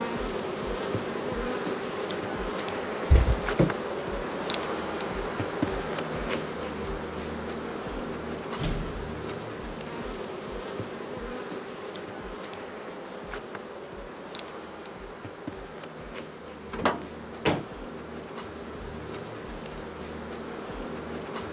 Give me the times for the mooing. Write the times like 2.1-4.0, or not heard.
not heard.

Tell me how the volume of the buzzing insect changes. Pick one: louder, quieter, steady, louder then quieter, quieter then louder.
quieter.